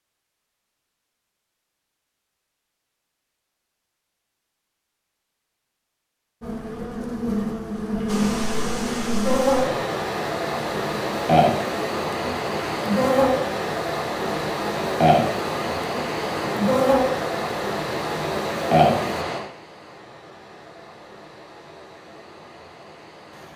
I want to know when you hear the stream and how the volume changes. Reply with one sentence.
You can hear the stream from 8.1 to 23.5 s, getting quieter.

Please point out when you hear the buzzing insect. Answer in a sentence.
The buzzing insect can be heard from 6.4 to 19.2 s.